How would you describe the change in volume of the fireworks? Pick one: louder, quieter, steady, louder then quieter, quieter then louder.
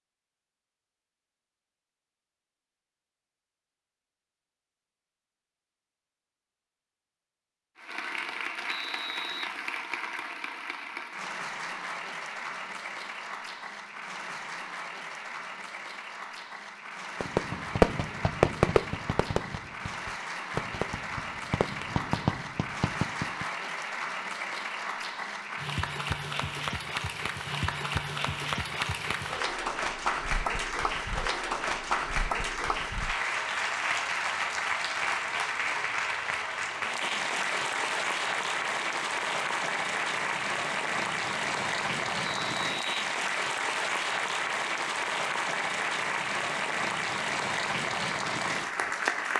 quieter then louder.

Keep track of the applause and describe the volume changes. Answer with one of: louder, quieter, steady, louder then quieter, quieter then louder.
louder.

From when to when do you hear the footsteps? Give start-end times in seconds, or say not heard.
not heard.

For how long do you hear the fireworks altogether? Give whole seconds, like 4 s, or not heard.
6 s.